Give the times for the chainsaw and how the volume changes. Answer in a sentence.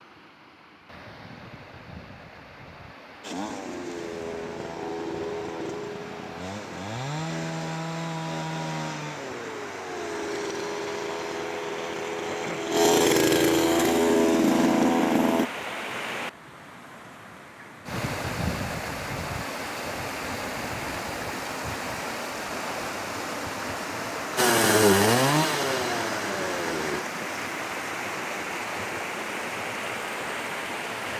You can hear the chainsaw from 3.2 to 15.4 s, getting louder; and briefly from 24.4 to 27.1 s.